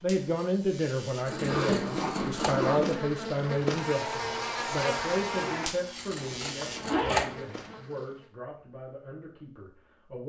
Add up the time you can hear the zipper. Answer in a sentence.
The zipper can be heard for 3 seconds in total.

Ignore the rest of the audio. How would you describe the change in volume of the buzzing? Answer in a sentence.
The loudness of the buzzing goes up, then down.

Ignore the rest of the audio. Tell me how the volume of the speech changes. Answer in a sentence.
The loudness of the speech goes down.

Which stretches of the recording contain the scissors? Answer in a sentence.
The scissors can be heard from 1.2 to 2.7 s and from 6.0 to 7.3 s.